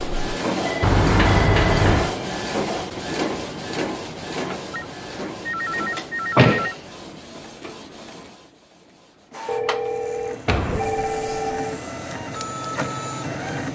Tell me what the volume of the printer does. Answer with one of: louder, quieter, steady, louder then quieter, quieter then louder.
quieter then louder.